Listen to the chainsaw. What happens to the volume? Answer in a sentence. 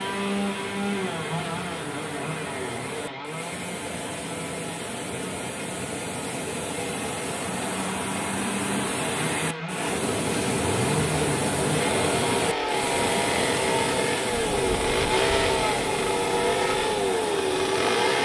The volume of the chainsaw goes down, then up.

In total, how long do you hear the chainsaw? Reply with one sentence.
The chainsaw can be heard for 18 seconds in total.